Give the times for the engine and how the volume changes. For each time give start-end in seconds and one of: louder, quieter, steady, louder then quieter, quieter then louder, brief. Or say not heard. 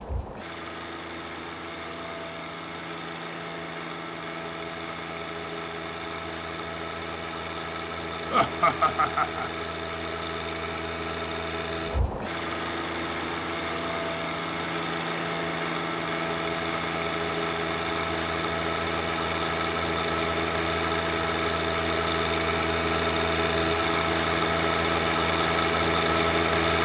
0.0-26.7 louder.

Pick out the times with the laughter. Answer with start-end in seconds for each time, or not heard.
8.3-9.5.